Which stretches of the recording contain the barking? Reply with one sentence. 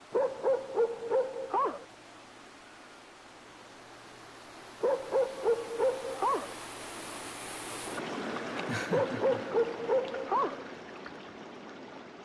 You can hear the barking from 0.1 to 1.9 s, from 4.8 to 6.5 s and from 8.9 to 10.7 s.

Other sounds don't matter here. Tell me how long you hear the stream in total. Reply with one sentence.
The stream can be heard for 12 seconds in total.